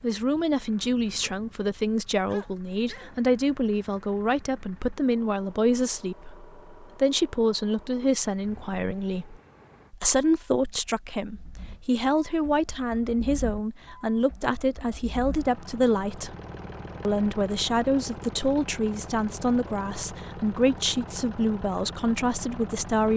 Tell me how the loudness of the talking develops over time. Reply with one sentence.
The volume of the talking stays about the same.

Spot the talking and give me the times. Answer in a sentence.
You can hear the talking from 0.0 to 16.4 s and from 17.0 to 23.1 s.